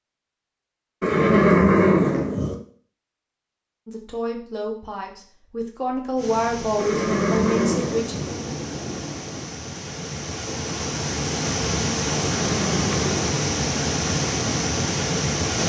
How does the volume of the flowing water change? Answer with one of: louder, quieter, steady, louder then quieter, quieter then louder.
louder.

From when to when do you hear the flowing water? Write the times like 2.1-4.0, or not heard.
6.2-15.6.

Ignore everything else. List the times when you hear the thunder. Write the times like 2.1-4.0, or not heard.
8.1-9.5.